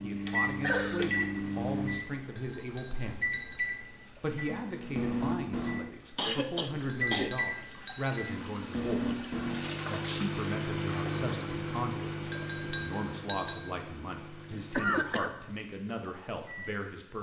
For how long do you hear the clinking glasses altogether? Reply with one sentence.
You can hear the clinking glasses for 4 seconds altogether.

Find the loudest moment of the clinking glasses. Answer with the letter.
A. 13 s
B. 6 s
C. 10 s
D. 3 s
A.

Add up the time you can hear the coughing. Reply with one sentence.
The coughing can be heard for 3 seconds in total.